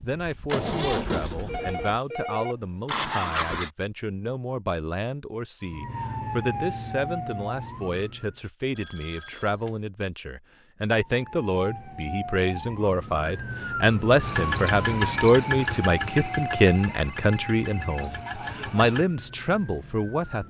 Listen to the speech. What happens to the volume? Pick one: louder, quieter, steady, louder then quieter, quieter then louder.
louder.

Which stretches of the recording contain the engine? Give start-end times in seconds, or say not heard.
0.0-3.7, 14.2-19.1.